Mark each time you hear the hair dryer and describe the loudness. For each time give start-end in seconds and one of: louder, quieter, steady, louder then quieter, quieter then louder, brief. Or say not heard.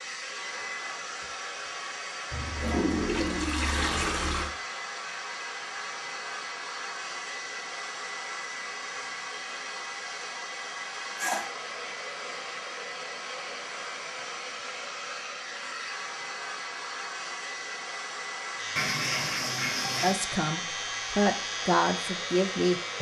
0.0-22.9 steady.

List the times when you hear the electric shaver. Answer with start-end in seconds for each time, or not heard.
18.6-22.9.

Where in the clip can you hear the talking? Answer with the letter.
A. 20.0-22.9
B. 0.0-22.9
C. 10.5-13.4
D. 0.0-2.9
A.